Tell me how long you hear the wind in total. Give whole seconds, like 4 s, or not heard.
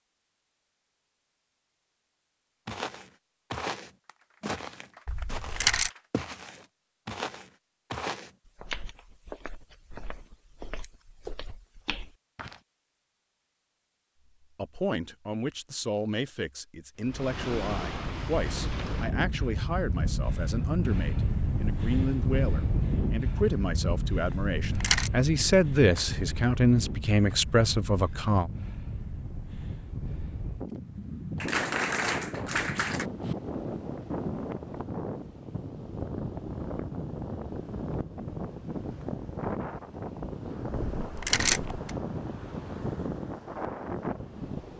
28 s.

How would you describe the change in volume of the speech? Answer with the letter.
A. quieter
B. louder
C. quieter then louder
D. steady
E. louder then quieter
B.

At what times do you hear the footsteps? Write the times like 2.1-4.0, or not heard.
2.6-12.6.